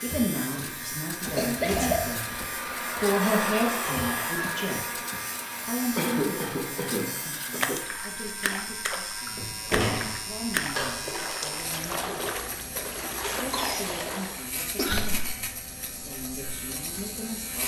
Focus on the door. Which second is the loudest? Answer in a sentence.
The volume of the door peaks at 10 seconds.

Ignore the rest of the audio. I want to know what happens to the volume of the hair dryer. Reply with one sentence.
The loudness of the hair dryer goes up, then down.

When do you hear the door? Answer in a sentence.
You can hear the door from 1.2 to 2.5 s and from 9.3 to 11.1 s.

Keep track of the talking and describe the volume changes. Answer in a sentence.
The volume of the talking goes down.